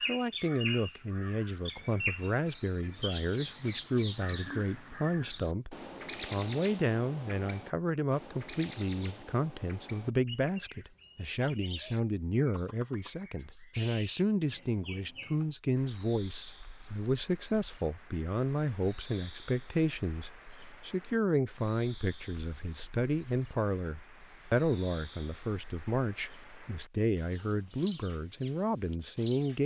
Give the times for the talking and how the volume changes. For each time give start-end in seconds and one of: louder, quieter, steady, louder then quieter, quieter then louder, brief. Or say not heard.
0.1-29.6 steady.